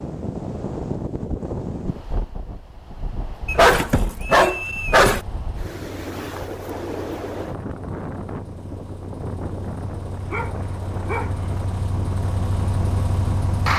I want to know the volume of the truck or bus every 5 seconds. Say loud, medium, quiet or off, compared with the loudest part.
off, quiet, loud.